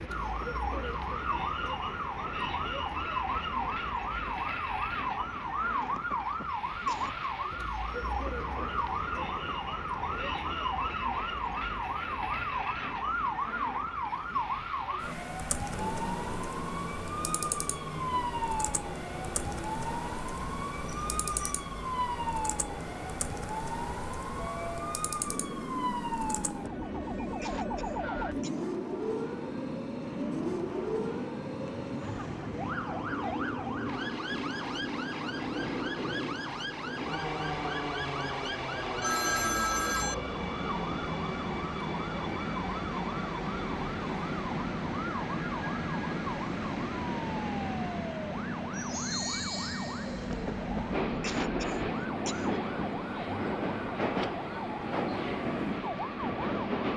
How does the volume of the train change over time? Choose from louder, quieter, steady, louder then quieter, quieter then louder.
louder.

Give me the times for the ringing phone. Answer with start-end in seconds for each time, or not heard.
39.0-40.1.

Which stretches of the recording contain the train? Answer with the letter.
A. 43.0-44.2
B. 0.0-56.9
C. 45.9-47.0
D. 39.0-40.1
B.